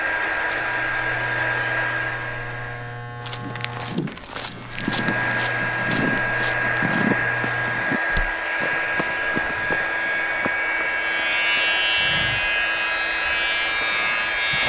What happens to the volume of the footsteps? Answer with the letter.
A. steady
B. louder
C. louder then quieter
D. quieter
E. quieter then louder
D.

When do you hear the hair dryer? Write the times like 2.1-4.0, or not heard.
0.0-3.1, 4.7-14.6.